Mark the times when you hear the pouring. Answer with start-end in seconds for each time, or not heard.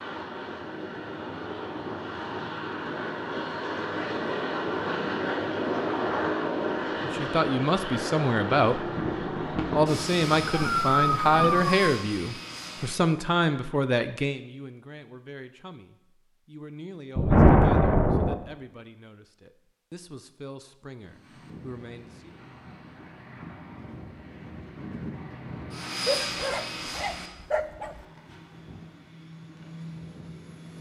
not heard.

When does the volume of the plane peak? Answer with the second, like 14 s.
6 s.